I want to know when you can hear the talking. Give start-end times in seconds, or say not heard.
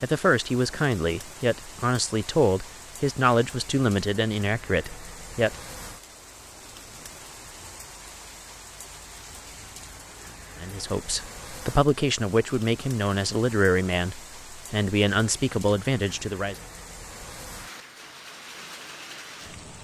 0.0-5.5, 10.6-16.6.